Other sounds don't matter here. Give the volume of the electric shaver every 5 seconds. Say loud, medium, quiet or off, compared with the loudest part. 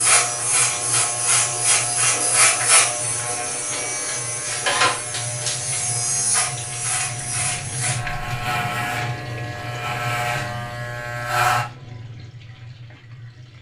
loud, medium, loud.